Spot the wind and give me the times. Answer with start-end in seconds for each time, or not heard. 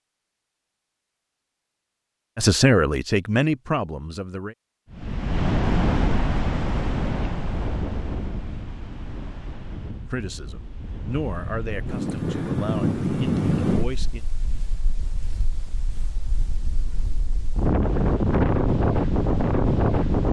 4.9-20.2.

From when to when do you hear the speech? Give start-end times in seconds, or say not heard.
2.4-4.5, 10.1-14.2.